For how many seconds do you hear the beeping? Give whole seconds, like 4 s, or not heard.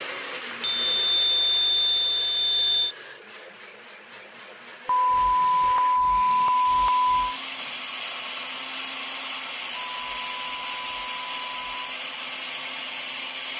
7 s.